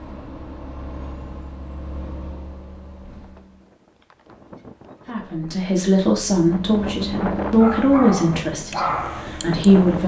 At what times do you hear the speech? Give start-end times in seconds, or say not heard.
5.0-10.0.